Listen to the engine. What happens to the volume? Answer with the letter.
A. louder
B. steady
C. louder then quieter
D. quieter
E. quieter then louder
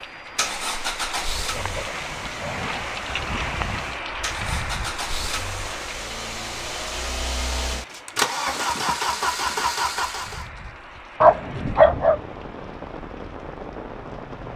E.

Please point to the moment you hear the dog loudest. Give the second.
12 s.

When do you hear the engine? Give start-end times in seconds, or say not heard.
0.0-10.4.